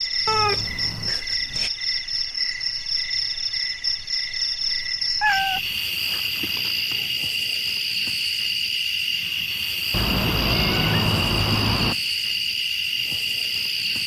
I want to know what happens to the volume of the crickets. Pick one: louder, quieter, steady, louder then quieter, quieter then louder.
steady.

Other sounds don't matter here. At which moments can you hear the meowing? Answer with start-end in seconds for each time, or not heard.
0.2-1.7, 5.2-5.7, 9.9-11.9.